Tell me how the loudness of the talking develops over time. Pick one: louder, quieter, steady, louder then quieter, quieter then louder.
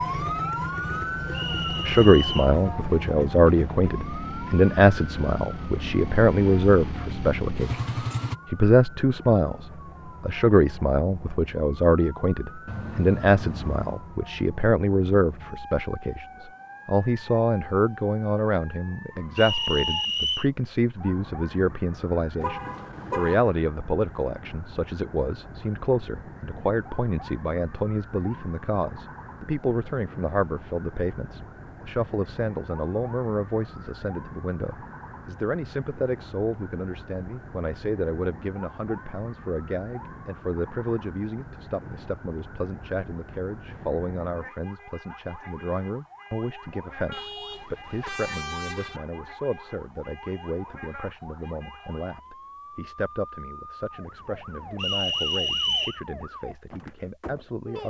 quieter.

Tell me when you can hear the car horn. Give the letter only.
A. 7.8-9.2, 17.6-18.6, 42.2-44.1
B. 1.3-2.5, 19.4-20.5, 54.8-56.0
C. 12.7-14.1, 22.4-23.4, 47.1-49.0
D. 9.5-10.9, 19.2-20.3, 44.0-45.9
C.